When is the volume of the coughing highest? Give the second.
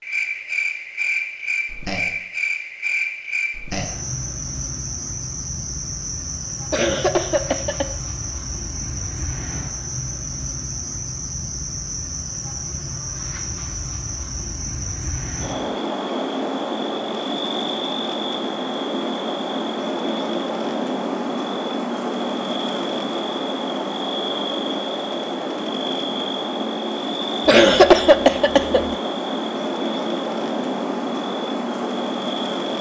28 s.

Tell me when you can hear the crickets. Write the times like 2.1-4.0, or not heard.
0.0-32.7.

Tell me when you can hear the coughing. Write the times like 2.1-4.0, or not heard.
6.7-7.8, 27.4-28.9.